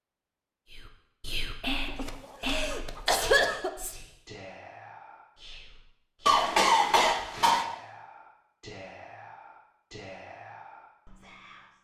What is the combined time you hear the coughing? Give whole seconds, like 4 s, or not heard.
3 s.